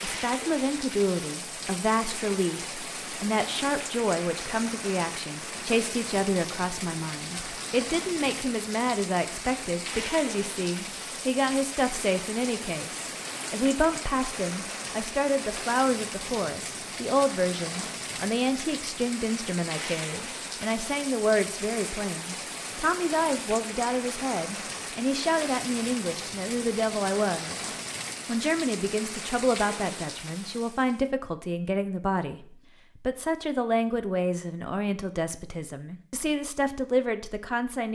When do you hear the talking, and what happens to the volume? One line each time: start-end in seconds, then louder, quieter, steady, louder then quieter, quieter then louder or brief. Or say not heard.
0.0-37.9 steady.